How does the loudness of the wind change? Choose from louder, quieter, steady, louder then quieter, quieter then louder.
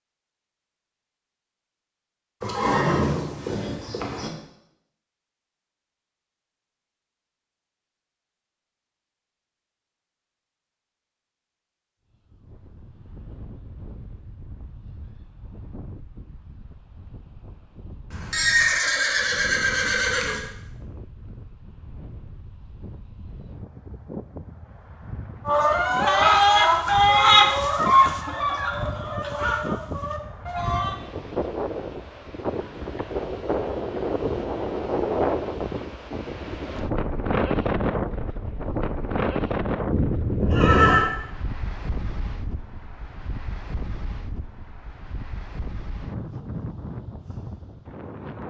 louder then quieter.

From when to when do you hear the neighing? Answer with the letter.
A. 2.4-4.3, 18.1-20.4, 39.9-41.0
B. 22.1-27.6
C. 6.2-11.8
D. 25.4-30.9
A.